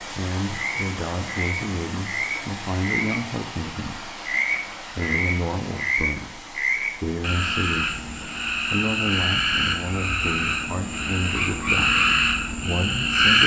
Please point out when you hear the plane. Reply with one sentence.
The plane can't be heard in this clip.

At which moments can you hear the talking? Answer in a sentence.
You can hear the talking from 0.1 to 4.2 s and from 4.9 to 13.4 s.